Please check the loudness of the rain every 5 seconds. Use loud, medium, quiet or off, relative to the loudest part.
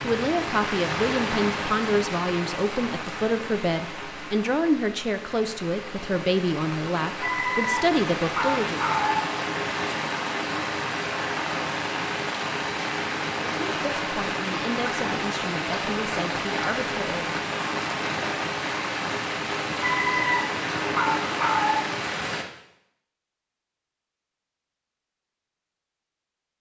loud, loud, loud, loud, loud, off.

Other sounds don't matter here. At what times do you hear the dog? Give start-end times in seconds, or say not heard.
7.2-9.2, 19.8-21.9.